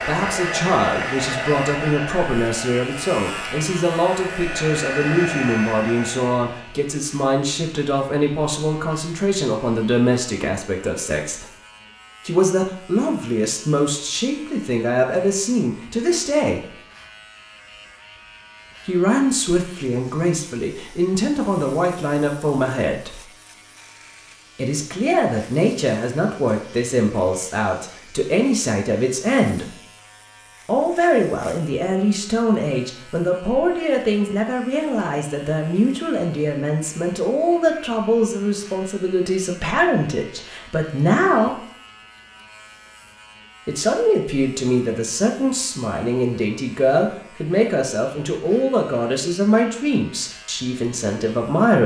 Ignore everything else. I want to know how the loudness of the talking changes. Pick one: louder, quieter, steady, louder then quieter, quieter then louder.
steady.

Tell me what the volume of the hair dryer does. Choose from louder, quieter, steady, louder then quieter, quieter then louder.
quieter then louder.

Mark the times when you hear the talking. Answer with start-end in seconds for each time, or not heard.
0.0-11.5, 12.2-16.6, 18.9-23.2, 24.6-29.8, 30.6-41.6, 43.6-51.8.